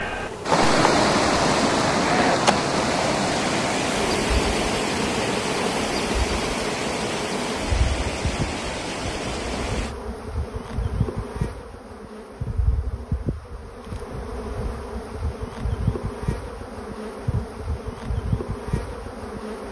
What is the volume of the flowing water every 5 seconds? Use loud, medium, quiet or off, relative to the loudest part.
loud, medium, off, off.